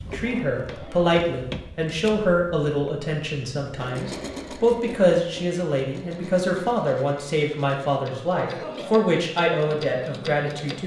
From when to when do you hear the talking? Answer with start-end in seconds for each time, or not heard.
0.1-10.8.